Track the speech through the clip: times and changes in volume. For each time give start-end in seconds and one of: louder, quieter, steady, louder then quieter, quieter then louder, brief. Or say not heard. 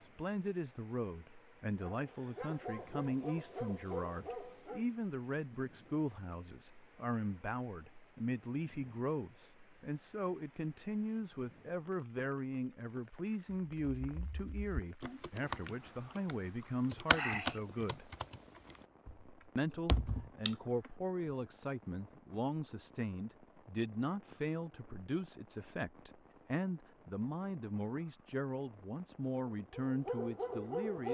0.0-18.1 steady
19.6-31.0 steady.